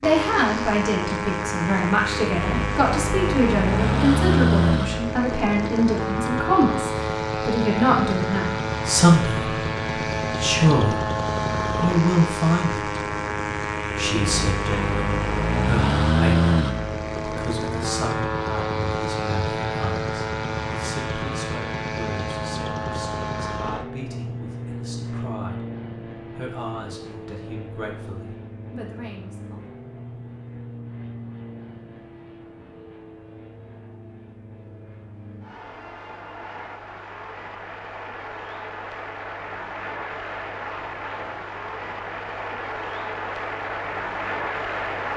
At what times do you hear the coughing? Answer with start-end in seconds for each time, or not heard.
not heard.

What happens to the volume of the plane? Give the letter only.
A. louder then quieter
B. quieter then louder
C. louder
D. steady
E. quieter
B.